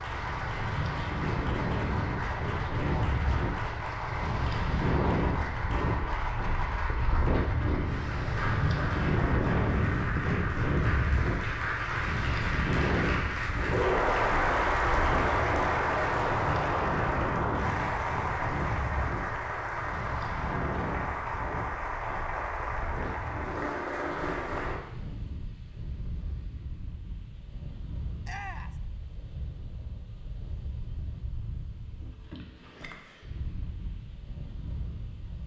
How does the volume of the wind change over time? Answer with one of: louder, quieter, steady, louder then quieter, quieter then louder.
quieter.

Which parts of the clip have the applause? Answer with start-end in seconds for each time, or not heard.
0.0-24.8.